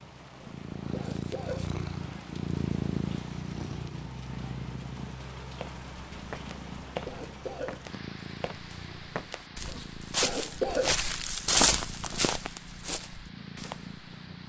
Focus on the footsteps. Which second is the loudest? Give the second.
12 s.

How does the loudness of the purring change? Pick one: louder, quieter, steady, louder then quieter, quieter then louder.
quieter.